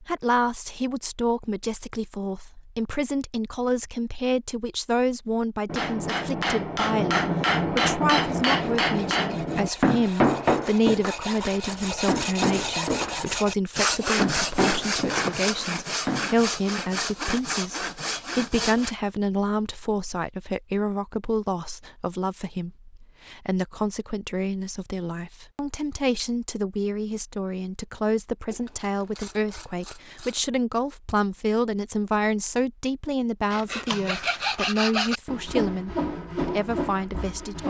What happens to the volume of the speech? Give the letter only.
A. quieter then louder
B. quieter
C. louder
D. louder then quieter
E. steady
E.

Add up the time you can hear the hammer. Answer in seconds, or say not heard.
9 s.